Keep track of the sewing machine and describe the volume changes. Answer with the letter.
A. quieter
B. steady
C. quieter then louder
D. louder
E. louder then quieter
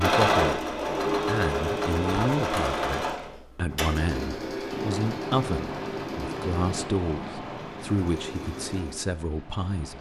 A.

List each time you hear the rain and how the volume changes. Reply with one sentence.
You can hear the rain from 4.7 to 9.9 s, getting quieter.